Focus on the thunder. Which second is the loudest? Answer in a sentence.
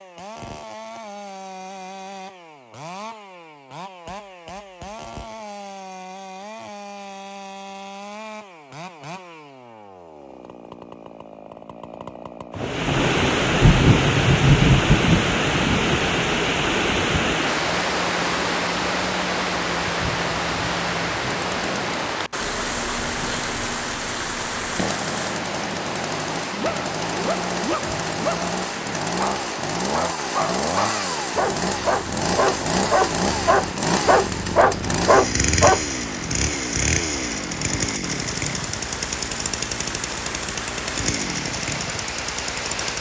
The loudest moment of the thunder is at 15 seconds.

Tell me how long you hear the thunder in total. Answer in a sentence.
The thunder can be heard for 5 seconds in total.